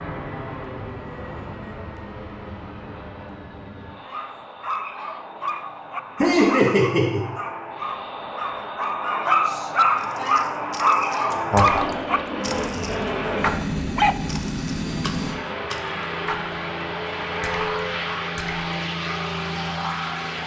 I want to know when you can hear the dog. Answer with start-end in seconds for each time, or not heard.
4.0-14.2.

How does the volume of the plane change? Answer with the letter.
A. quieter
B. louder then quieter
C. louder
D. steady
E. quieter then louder
C.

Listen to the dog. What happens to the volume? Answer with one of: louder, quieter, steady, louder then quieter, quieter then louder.
louder then quieter.